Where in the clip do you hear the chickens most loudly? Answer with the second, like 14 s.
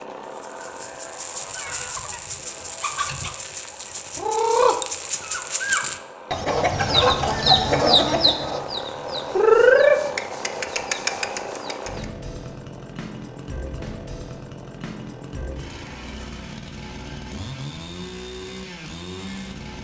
10 s.